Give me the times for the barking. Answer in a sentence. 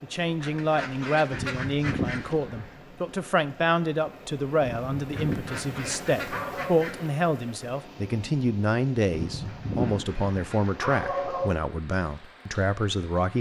The barking can be heard from 1.3 to 2.7 s, from 4.6 to 6.8 s and from 9.1 to 11.6 s.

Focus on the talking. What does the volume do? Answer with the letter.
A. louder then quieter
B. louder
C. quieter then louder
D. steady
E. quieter
D.